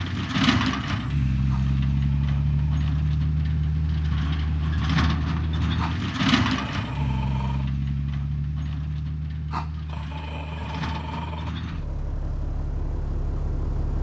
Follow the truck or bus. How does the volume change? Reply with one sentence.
The loudness of the truck or bus goes down.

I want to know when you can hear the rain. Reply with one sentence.
The rain can't be heard in this clip.